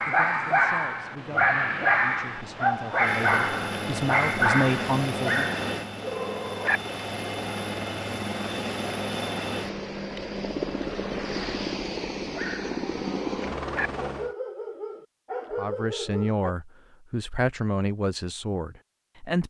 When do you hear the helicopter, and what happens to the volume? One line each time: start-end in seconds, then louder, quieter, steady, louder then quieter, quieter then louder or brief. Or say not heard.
0.0-14.3 louder.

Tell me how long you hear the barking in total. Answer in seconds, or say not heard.
11 s.